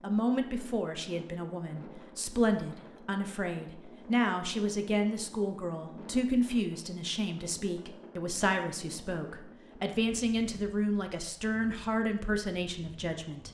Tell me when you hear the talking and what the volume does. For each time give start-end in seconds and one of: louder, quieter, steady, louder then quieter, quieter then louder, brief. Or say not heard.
0.0-13.4 steady.